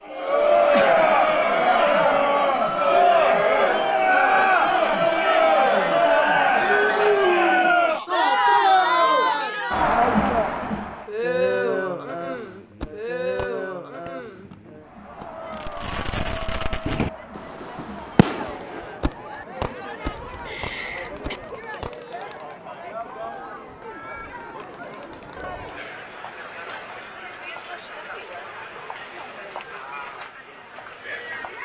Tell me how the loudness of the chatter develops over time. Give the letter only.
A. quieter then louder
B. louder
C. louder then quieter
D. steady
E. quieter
E.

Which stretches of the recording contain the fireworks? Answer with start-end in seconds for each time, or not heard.
12.2-22.1.